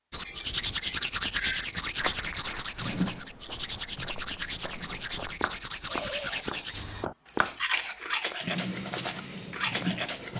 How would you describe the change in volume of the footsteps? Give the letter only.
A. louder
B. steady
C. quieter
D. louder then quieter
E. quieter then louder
A.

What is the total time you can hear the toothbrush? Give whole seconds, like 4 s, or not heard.
10 s.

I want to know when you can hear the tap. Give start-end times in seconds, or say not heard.
2.8-5.0, 8.4-10.3.